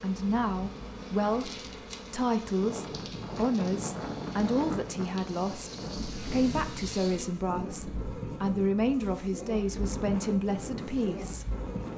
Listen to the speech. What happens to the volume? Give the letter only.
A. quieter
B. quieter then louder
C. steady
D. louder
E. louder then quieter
C.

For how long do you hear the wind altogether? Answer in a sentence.
The wind can be heard for 9 seconds in total.